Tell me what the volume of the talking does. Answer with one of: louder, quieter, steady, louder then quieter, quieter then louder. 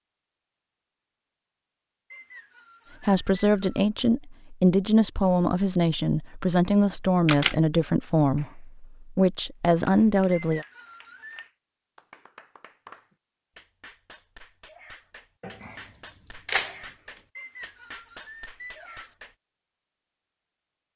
steady.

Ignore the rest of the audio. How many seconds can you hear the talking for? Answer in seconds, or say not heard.
8 s.